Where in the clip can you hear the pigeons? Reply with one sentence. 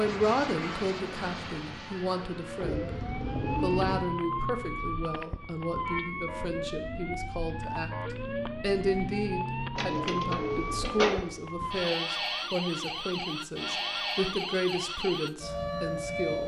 The pigeons can be heard from 2.6 to 4.1 s and from 9.8 to 11.2 s.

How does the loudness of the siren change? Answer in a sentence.
The loudness of the siren stays about the same.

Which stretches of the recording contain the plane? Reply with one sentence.
You can hear the plane from 0.0 to 3.8 s.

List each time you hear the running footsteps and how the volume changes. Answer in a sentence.
You can't hear the running footsteps here.